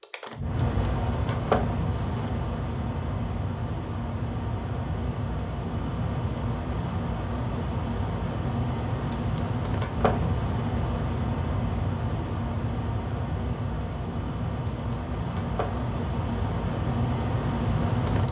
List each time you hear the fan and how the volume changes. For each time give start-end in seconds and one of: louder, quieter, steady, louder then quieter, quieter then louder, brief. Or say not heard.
0.0-18.2 steady.